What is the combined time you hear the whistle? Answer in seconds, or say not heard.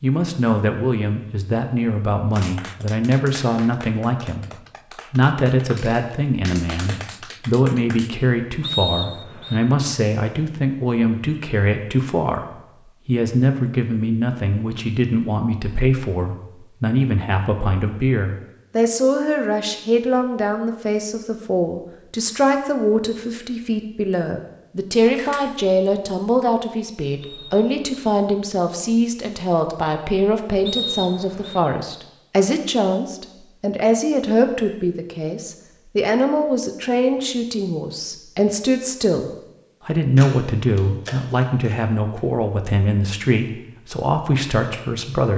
3 s.